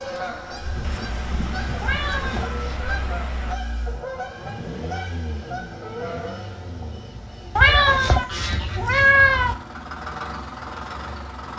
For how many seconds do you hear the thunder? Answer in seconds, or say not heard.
3 s.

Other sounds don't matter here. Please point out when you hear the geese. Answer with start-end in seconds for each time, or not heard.
0.0-8.8.